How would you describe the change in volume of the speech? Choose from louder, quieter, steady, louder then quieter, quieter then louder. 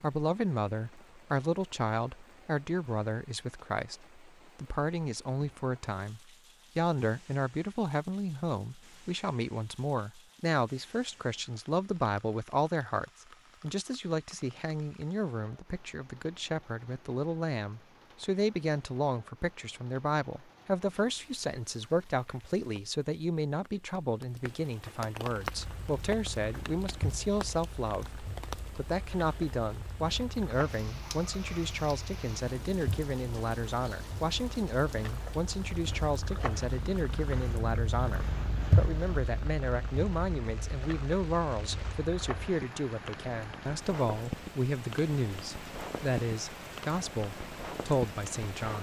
steady.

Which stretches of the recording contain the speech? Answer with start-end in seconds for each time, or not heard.
0.0-48.7.